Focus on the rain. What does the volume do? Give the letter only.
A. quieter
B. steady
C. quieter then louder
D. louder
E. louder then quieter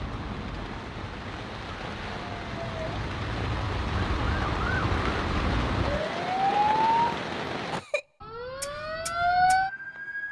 D.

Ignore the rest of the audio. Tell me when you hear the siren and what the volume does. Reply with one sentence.
You can hear the siren from 0.0 to 10.2 s, getting louder.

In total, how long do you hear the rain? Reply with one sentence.
The rain can be heard for 8 seconds in total.